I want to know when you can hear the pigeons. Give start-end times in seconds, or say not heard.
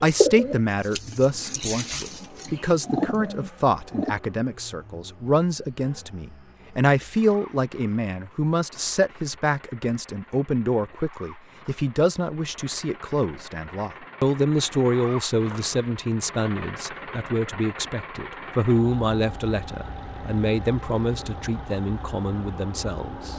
0.0-4.2.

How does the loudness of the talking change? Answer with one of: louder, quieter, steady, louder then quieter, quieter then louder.
steady.